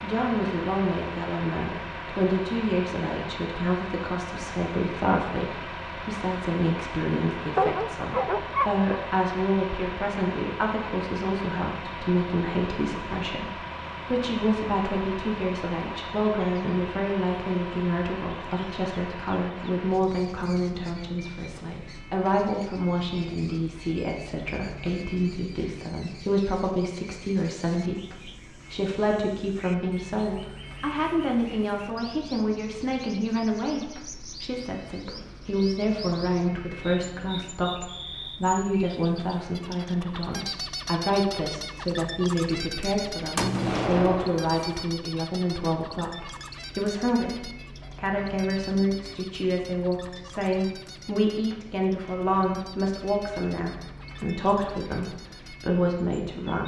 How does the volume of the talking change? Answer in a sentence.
The loudness of the talking stays about the same.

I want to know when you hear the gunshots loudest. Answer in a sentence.
The loudest moment of the gunshots is at 44 seconds.